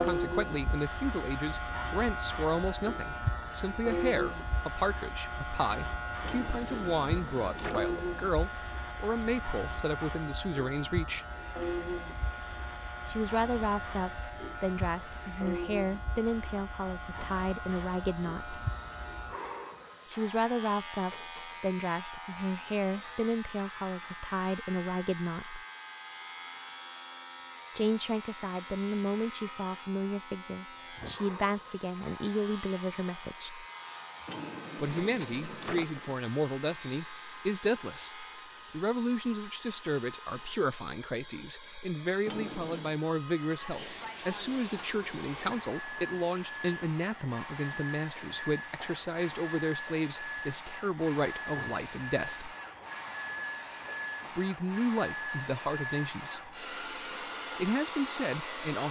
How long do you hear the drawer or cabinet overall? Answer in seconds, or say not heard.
4 s.